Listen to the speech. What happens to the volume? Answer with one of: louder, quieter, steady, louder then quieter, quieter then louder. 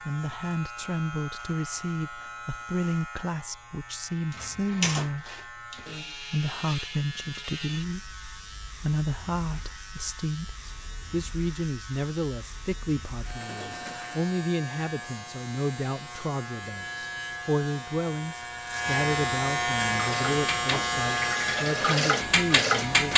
steady.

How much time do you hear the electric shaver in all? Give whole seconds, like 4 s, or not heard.
23 s.